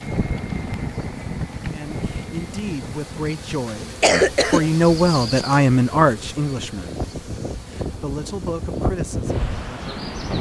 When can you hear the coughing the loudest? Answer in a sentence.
The loudest moment of the coughing is at 4 seconds.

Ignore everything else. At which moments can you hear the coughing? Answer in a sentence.
The coughing can be heard from 3.8 to 5.6 s.